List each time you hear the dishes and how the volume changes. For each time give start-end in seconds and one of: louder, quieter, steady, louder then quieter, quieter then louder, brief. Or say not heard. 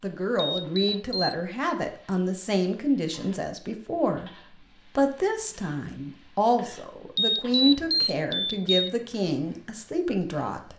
not heard.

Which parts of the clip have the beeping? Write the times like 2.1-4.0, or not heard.
0.3-1.4, 7.2-8.9.